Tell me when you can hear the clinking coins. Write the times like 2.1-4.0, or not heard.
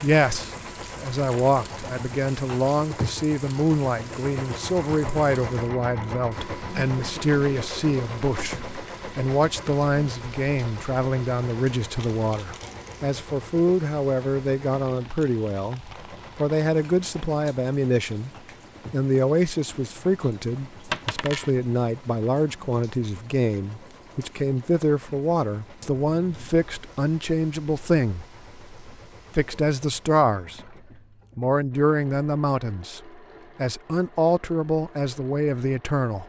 11.9-13.1, 20.9-21.5.